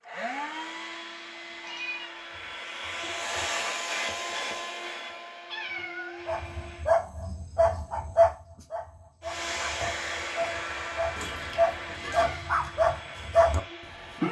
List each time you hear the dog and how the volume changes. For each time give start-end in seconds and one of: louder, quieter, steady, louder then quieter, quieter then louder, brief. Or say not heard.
6.2-13.6 quieter then louder.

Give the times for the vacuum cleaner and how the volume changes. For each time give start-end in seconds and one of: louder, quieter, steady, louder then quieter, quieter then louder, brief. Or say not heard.
0.0-6.9 louder then quieter
9.2-14.2 quieter.